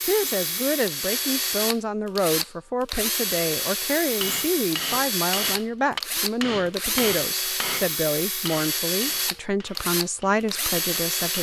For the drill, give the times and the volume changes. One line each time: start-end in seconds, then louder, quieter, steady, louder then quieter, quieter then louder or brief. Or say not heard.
0.0-11.3 steady.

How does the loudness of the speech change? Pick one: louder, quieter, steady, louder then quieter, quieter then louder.
steady.